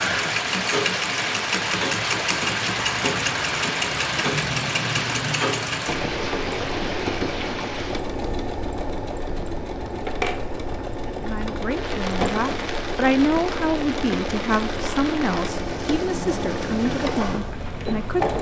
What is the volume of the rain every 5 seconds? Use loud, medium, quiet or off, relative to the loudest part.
loud, medium, medium, medium.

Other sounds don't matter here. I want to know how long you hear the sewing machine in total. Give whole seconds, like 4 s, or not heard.
18 s.